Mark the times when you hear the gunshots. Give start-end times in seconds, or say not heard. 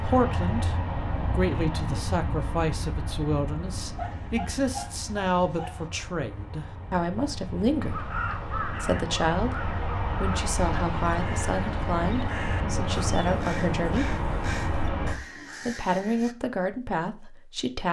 not heard.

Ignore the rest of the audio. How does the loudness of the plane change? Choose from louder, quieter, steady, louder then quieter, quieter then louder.
quieter then louder.